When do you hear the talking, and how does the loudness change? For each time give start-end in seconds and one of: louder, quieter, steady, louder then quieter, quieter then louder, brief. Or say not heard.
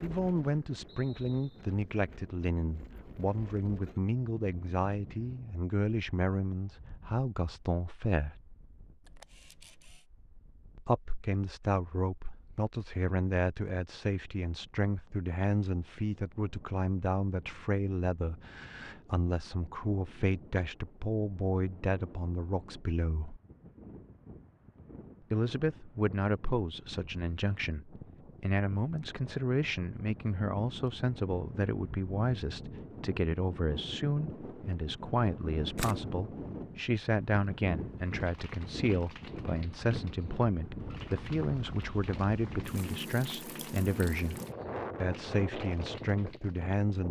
0.0-8.4 steady
10.8-23.4 steady
25.3-44.4 steady
45.0-47.0 brief.